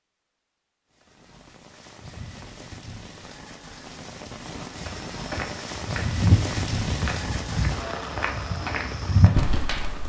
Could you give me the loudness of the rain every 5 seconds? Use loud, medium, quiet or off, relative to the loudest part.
medium, loud.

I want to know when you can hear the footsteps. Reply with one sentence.
The footsteps can be heard from 4.8 to 10.0 s.